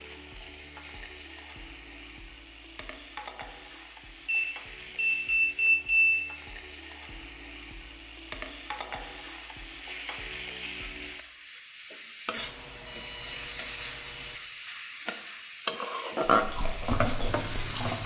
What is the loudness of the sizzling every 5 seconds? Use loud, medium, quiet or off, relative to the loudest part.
quiet, quiet, medium, loud.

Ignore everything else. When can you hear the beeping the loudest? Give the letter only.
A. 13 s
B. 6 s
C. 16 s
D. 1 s
B.